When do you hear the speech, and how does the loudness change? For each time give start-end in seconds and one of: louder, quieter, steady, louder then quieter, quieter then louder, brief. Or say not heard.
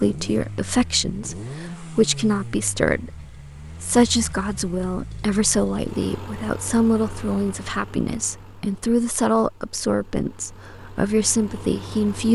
0.0-12.3 steady.